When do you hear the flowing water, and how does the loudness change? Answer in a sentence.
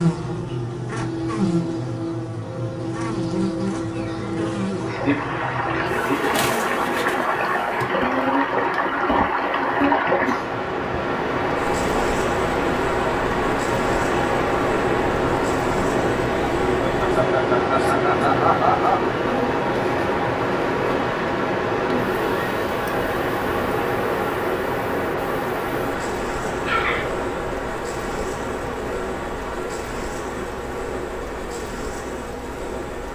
The flowing water can be heard from 4.8 to 33.0 s, getting quieter.